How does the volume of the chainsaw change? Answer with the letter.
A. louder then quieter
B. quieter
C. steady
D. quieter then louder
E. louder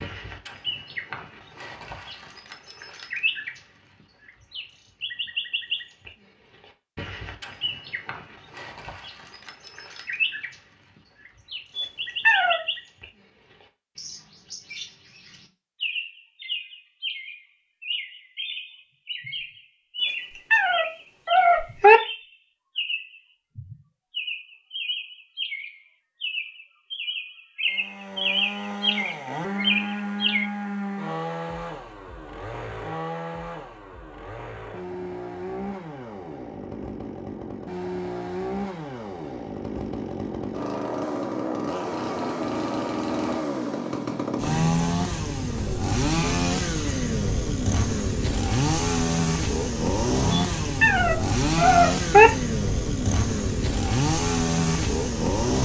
E.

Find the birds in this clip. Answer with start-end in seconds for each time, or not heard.
0.0-30.5.